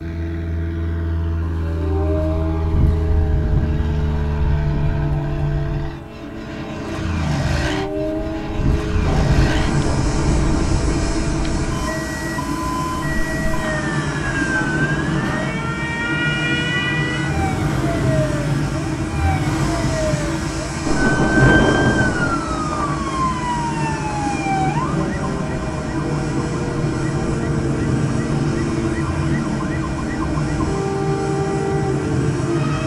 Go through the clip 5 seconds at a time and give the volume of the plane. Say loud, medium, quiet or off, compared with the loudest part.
medium, loud, loud, loud, loud, loud, loud.